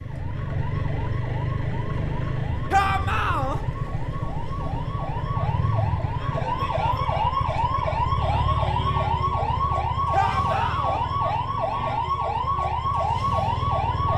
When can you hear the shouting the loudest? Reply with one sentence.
The loudest moment of the shouting is at 3 seconds.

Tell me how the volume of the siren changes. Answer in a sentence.
The volume of the siren goes up.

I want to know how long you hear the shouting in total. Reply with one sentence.
The shouting can be heard for 2 seconds in total.